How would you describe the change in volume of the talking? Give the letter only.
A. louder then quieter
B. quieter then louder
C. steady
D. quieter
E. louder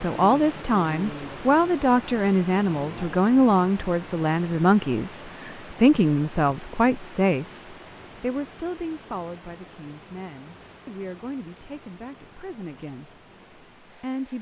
D.